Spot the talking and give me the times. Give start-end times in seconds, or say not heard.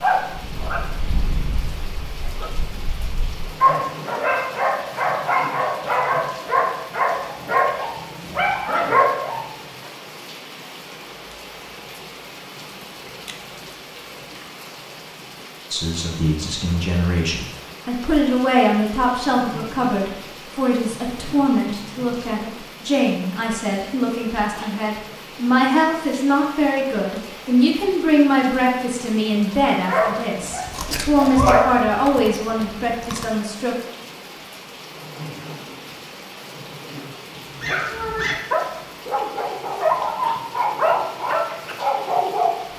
15.7-33.8.